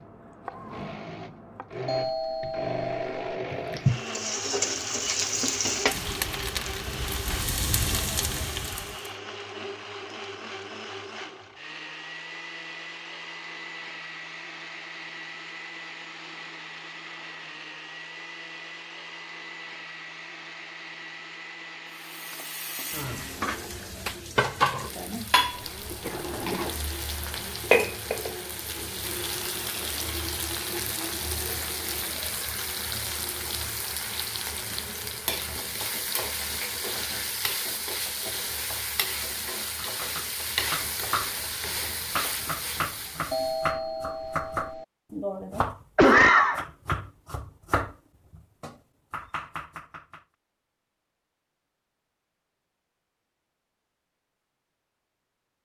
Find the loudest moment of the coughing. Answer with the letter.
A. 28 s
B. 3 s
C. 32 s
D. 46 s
D.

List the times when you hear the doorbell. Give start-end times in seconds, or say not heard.
1.9-3.2, 43.3-44.9.